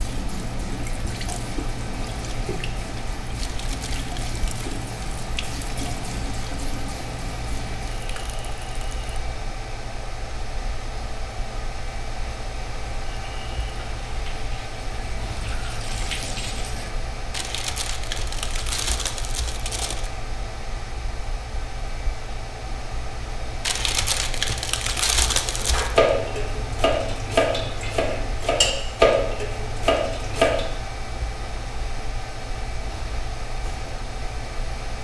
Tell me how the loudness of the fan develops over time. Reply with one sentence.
The loudness of the fan stays about the same.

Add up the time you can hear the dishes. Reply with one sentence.
The dishes can be heard for 5 seconds in total.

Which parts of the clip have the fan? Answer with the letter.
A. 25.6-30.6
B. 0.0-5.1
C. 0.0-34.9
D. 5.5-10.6
C.